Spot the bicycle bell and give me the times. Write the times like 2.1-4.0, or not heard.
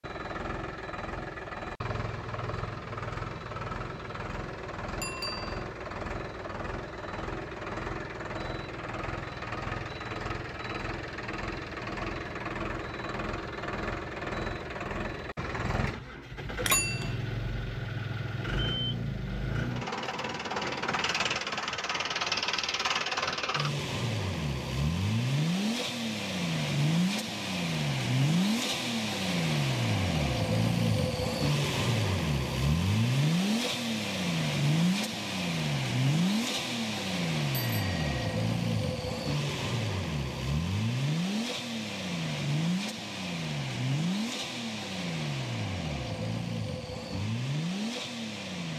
5.0-5.6, 16.6-17.1, 37.5-38.1.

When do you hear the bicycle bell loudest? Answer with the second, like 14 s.
17 s.